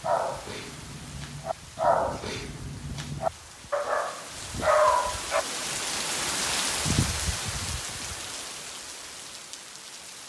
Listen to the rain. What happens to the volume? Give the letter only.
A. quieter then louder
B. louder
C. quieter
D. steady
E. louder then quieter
E.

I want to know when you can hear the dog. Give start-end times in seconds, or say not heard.
0.0-5.5.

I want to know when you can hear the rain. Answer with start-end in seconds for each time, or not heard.
0.0-10.2.